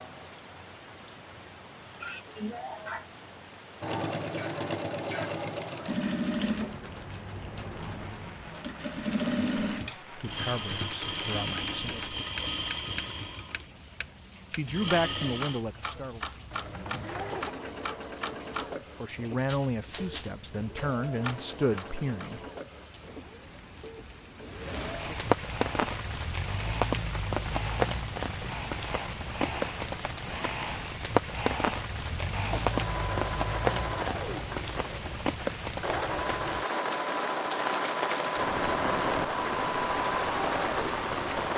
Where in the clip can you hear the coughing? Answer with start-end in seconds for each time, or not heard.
2.0-3.0, 17.3-17.9, 32.1-32.8.